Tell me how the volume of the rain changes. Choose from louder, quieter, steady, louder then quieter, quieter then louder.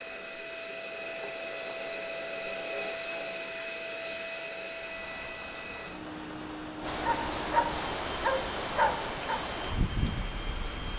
louder.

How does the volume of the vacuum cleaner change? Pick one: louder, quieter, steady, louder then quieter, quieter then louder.
quieter.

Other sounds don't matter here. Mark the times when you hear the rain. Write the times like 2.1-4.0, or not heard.
4.7-10.9.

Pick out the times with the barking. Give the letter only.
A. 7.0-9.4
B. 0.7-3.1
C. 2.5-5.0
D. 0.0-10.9
A.